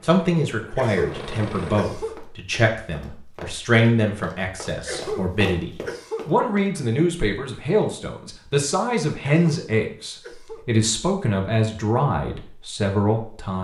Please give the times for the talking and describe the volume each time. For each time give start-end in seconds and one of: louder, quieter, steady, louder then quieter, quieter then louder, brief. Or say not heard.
0.0-13.5 steady.